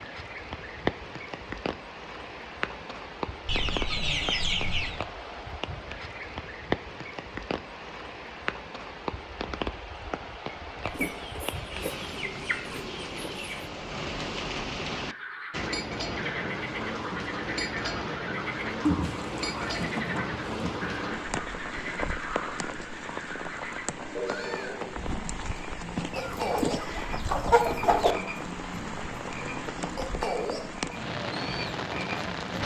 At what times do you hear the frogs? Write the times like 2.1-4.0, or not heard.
14.9-32.6.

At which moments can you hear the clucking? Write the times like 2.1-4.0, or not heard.
3.5-5.0, 10.8-13.7, 18.8-20.8, 26.1-28.1.